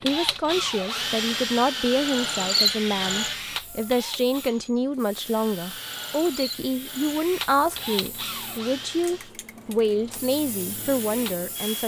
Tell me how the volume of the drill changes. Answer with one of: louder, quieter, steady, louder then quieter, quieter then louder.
quieter.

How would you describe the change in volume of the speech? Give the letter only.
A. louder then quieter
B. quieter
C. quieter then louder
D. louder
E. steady
E.